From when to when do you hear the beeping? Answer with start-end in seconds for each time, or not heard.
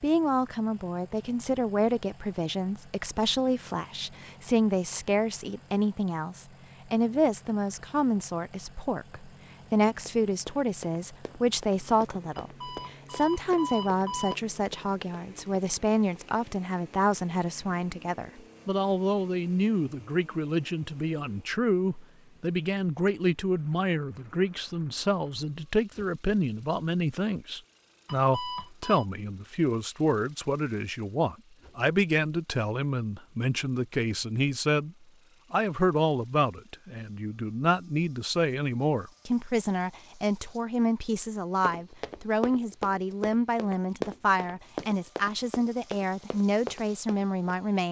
12.3-14.3, 28.1-29.1.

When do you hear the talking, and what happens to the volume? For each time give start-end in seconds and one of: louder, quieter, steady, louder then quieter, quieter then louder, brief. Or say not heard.
0.0-47.8 steady.